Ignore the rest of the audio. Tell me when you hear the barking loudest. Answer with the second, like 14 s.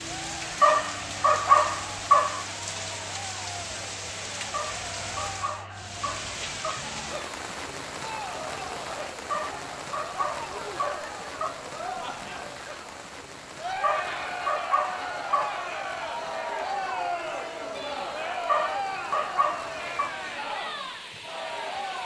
1 s.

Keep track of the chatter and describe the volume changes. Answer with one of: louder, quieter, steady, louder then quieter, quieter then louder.
louder.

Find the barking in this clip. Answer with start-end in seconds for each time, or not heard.
0.6-2.5, 4.5-6.8, 9.3-11.6, 13.8-15.7, 18.4-20.1.